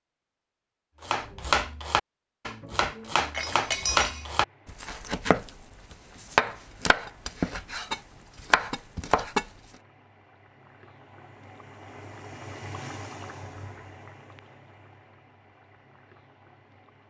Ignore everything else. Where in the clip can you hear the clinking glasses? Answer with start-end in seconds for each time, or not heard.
2.7-4.3.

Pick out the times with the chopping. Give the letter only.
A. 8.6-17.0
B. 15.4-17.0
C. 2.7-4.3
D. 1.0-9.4
D.